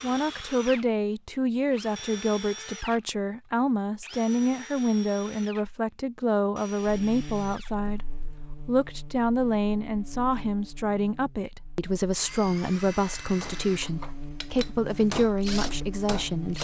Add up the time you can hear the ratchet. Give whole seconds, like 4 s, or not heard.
not heard.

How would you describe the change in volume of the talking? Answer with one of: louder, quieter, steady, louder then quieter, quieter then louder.
steady.